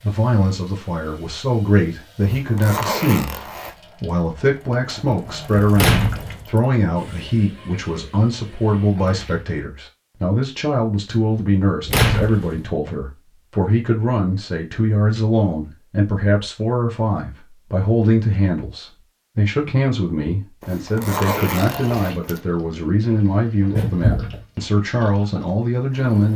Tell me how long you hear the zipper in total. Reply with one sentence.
The zipper can be heard for 3 seconds in total.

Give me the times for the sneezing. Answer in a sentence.
You can't hear the sneezing here.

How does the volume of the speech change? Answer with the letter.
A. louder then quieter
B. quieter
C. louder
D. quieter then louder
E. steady
E.